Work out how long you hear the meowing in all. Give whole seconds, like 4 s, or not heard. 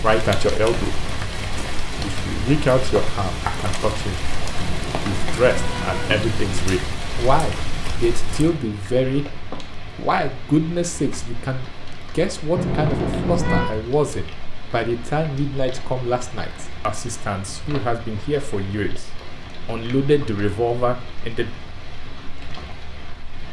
3 s.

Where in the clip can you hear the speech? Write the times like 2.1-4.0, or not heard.
0.0-1.0, 1.9-4.3, 5.0-9.3, 9.9-19.1, 19.6-21.5.